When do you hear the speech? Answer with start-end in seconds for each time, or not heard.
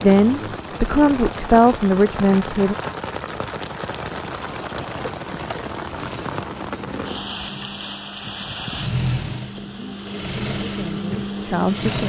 0.0-2.8, 9.9-12.0.